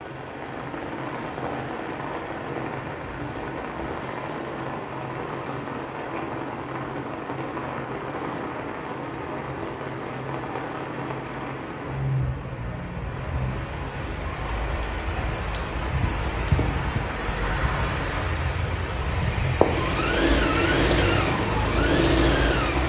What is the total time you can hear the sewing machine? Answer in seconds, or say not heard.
3 s.